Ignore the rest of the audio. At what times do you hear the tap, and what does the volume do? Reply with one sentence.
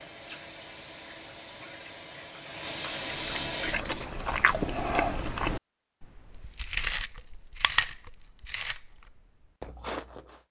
The tap can be heard from 0.0 to 4.2 s, getting louder.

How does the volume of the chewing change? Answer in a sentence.
The volume of the chewing goes down.